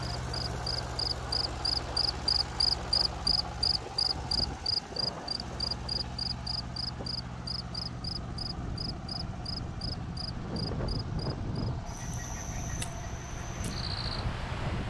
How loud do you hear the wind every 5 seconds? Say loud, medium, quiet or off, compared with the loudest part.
medium, medium, loud.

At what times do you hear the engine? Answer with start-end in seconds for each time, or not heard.
0.0-14.6.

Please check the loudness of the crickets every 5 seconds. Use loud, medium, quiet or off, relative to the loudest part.
loud, medium, quiet.